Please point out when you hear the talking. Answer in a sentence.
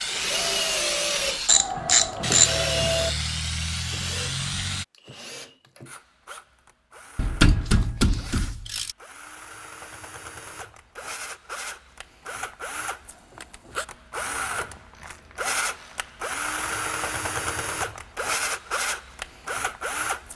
The talking can't be heard in this clip.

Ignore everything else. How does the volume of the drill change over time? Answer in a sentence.
The volume of the drill goes down, then up.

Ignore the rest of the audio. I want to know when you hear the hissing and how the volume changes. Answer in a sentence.
The hissing can be heard from 0.0 to 4.8 s, at a steady volume.